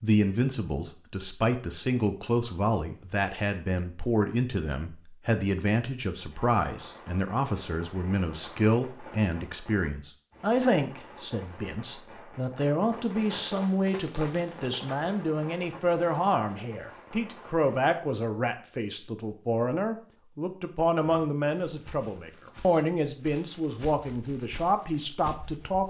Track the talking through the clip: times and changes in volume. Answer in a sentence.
You can hear the talking from 0.0 to 25.8 s, at a steady volume.